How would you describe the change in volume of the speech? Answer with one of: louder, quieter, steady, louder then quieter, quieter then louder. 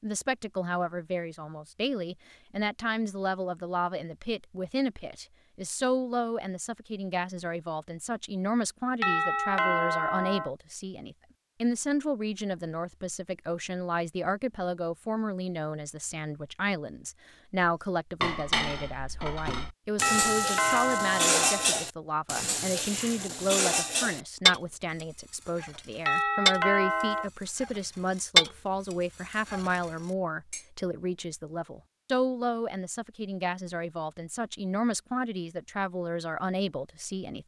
steady.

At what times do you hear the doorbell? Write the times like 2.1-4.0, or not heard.
9.0-10.5, 20.0-21.7, 26.1-27.3.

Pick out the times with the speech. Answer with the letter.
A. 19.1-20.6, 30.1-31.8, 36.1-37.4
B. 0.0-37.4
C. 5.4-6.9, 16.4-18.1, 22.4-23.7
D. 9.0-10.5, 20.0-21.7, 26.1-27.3
B.